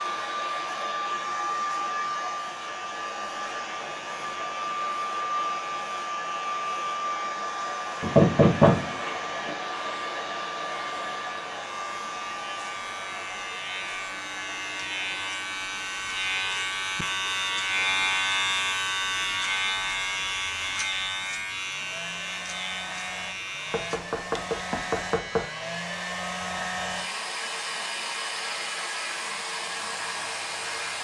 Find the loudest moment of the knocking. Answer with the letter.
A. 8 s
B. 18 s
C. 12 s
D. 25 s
A.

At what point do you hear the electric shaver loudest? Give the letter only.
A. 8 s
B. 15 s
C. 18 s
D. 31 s
C.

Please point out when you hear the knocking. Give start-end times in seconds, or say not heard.
8.0-9.6, 23.7-25.4.